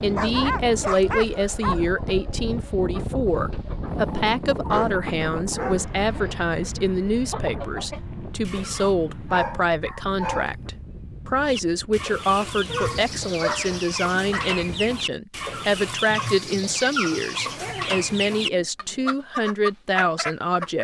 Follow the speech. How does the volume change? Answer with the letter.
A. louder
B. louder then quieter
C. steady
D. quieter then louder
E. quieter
C.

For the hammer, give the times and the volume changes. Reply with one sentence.
You can't hear the hammer here.